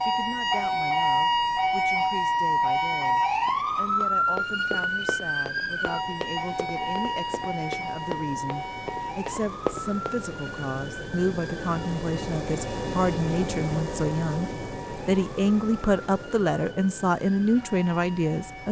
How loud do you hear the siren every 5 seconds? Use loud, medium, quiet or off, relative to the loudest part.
loud, medium, quiet, quiet.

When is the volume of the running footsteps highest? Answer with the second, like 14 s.
10 s.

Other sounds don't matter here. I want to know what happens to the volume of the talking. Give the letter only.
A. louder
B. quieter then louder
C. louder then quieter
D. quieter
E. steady
A.